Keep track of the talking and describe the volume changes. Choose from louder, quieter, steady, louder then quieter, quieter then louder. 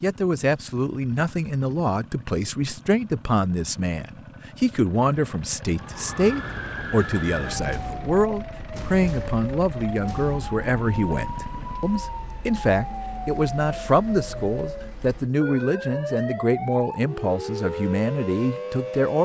steady.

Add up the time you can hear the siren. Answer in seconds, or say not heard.
13 s.